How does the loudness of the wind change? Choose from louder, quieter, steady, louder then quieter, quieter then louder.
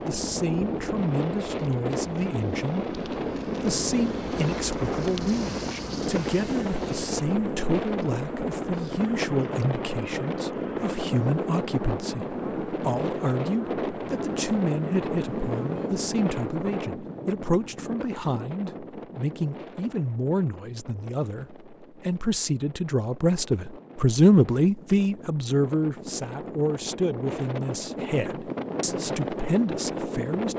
quieter then louder.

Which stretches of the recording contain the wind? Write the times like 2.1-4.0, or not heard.
0.0-30.5.